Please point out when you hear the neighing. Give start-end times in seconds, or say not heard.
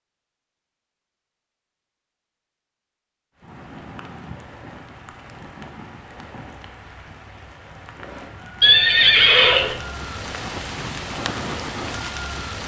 8.6-9.8.